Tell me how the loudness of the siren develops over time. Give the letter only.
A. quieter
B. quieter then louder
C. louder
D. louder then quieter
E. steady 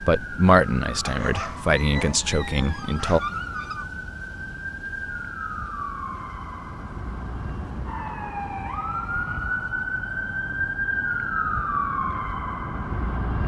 C.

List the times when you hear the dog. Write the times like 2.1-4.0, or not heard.
1.0-3.9.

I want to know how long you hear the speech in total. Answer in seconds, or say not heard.
3 s.